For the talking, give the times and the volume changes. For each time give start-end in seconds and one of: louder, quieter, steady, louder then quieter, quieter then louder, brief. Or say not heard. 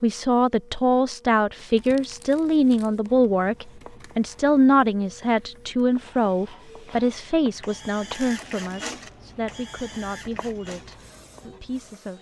0.0-12.1 quieter.